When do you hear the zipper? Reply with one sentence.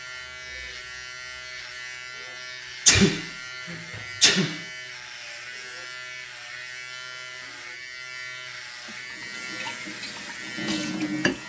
You can't hear the zipper here.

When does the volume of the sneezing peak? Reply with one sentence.
The loudest moment of the sneezing is at 3 seconds.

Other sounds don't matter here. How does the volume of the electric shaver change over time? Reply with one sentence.
The loudness of the electric shaver stays about the same.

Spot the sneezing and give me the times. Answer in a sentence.
The sneezing can be heard from 2.9 to 4.6 s.